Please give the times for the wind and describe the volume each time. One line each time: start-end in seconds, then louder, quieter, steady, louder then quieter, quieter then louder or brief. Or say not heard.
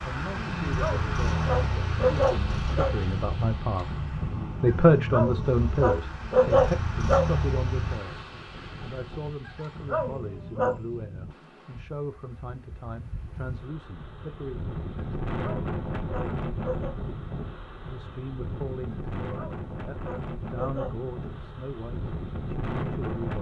0.0-23.3 quieter then louder.